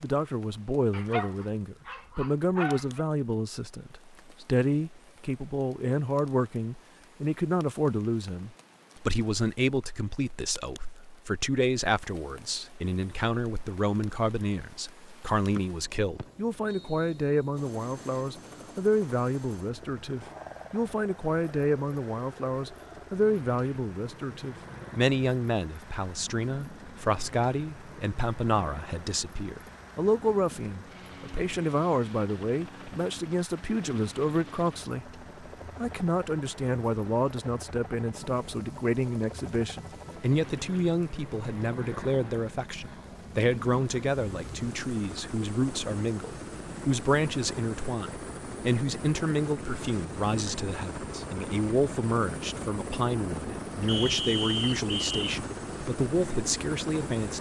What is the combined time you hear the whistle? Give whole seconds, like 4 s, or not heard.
3 s.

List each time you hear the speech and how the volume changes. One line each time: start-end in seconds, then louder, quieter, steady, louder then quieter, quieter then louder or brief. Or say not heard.
0.0-57.3 steady.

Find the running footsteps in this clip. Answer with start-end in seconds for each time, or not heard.
not heard.